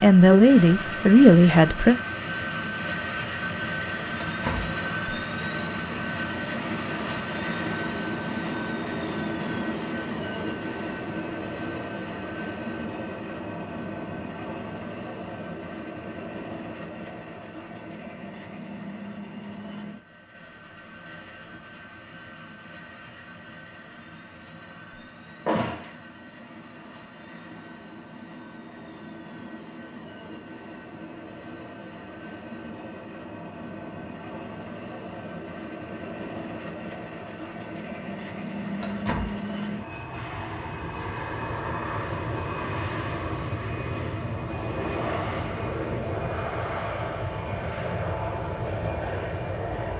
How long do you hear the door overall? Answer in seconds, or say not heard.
2 s.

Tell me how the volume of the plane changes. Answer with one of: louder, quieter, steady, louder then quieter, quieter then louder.
quieter then louder.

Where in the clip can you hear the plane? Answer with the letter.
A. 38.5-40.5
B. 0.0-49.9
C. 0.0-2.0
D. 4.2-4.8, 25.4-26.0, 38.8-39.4
B.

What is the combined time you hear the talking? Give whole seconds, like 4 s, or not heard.
2 s.